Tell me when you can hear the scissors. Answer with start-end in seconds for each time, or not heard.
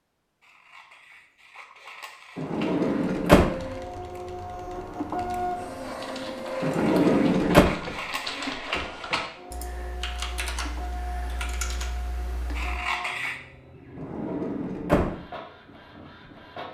0.4-2.9, 6.8-9.3, 12.6-13.4.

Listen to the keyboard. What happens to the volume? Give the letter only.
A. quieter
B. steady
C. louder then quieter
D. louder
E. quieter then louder
D.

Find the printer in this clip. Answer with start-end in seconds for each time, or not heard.
2.8-16.7.